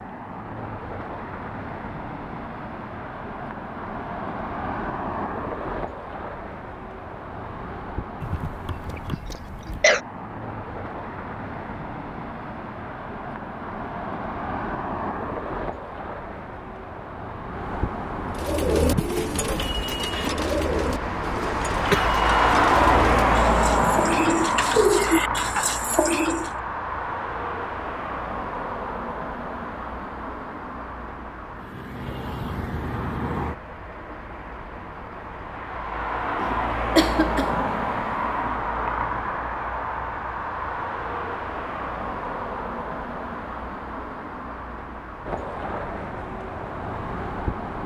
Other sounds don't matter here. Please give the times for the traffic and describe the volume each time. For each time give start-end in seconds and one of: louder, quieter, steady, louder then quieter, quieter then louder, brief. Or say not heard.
0.0-47.8 louder then quieter.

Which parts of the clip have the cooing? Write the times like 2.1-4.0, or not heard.
18.4-26.5.